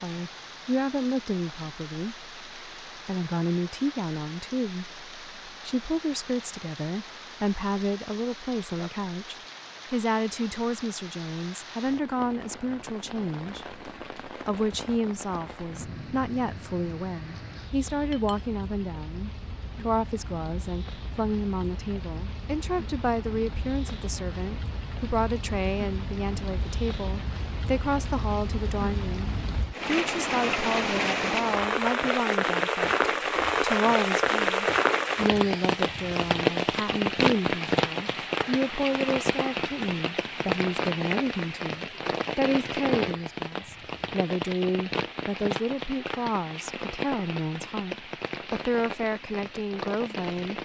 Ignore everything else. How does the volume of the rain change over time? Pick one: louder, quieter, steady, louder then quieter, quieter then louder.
louder then quieter.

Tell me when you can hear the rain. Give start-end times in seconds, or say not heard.
0.0-50.6.